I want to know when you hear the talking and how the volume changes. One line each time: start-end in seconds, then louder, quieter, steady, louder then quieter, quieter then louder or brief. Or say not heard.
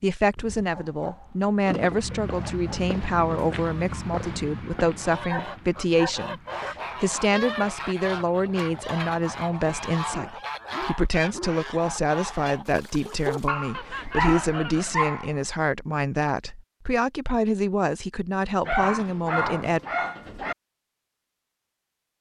0.0-19.8 steady.